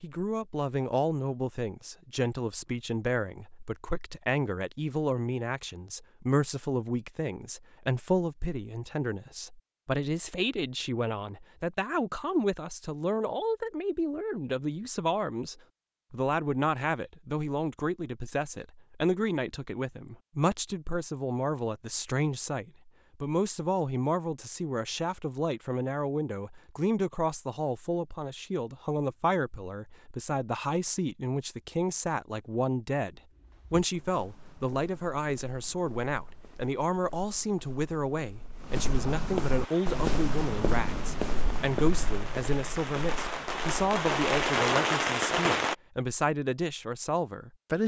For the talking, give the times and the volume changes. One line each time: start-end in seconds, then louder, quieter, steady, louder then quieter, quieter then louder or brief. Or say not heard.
0.0-47.8 steady.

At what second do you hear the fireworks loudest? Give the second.
45 s.